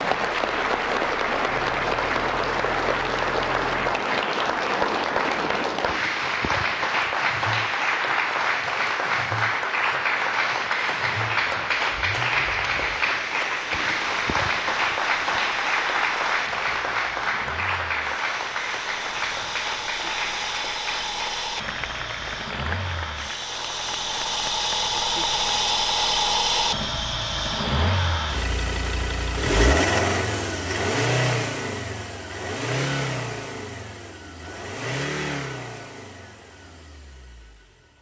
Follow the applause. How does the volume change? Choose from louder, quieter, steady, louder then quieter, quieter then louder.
quieter.